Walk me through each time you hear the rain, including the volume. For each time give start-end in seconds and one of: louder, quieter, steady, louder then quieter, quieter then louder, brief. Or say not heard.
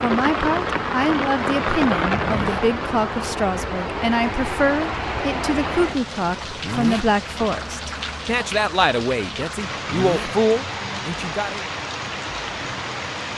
0.0-13.3 quieter.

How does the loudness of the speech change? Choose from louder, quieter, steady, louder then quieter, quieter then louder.
steady.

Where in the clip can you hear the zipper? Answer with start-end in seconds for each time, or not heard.
2.2-2.6, 6.6-7.1, 9.8-10.3.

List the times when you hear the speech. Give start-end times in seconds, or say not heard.
0.0-11.6.